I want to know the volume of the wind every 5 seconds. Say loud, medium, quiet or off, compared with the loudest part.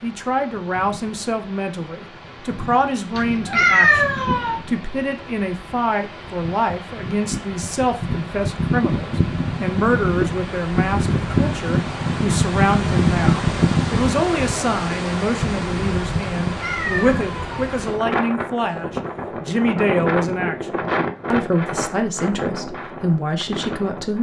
quiet, medium, loud, medium, medium.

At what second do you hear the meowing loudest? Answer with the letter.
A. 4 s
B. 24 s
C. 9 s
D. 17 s
A.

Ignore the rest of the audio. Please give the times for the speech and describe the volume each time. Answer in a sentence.
The speech can be heard from 0.0 to 24.1 s, at a steady volume.